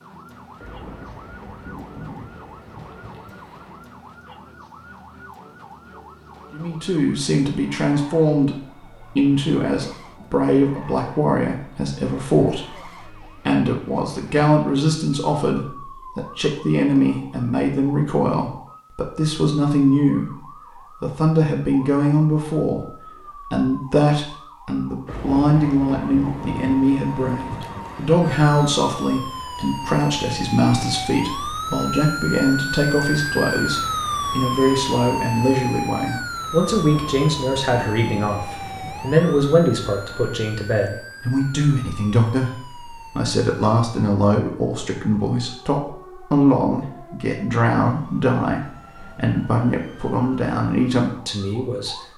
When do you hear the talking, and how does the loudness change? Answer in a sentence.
You can hear the talking briefly from 6.5 to 8.6 s; and from 9.2 to 52.0 s, at a steady volume.